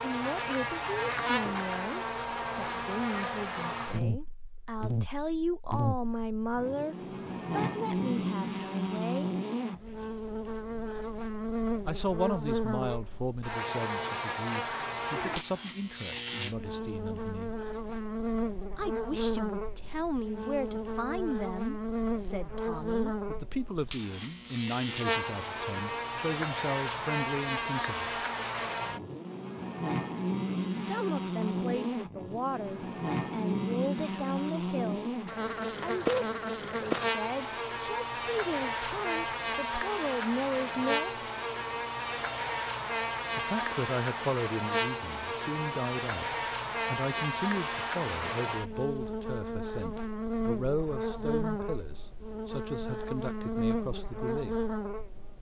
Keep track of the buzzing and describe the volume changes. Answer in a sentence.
The loudness of the buzzing stays about the same.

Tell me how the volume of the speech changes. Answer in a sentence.
The volume of the speech stays about the same.